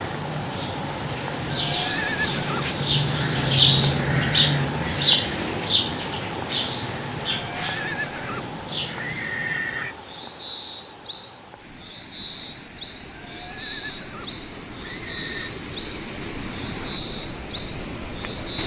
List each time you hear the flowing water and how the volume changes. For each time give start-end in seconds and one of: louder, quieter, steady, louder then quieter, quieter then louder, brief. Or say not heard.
0.0-18.6 quieter then louder.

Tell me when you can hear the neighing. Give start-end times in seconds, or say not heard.
1.5-2.7, 7.5-9.9, 13.1-15.5.